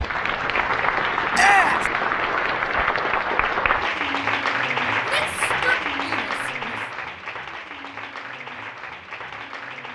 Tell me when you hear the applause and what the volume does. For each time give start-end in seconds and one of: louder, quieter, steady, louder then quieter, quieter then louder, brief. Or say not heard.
0.0-9.9 quieter.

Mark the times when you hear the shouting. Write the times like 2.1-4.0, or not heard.
1.3-1.9, 5.0-6.8.